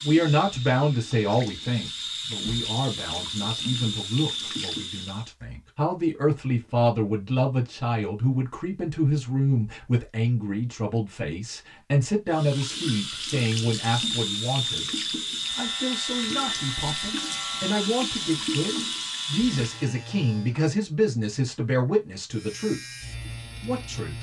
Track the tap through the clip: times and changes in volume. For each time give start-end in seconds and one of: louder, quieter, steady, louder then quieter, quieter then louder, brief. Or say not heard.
0.0-5.3 louder
12.3-19.9 steady.